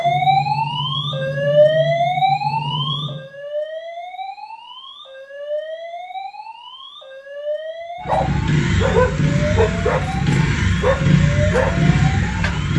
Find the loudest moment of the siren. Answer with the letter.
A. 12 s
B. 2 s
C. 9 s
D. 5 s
B.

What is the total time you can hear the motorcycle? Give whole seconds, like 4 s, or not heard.
8 s.